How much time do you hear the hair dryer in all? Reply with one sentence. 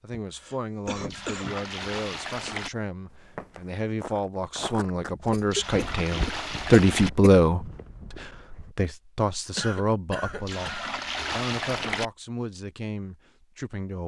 You can't hear the hair dryer here.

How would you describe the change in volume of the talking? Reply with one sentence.
The volume of the talking goes up, then down.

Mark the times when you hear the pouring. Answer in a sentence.
The pouring can be heard from 0.9 to 2.7 s, from 5.3 to 7.1 s and from 10.2 to 12.1 s.